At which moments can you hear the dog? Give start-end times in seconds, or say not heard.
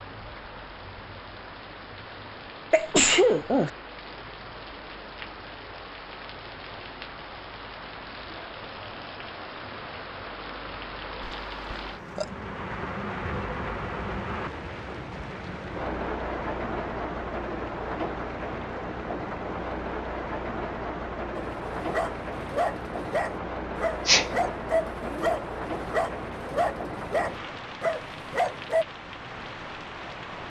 21.4-28.9.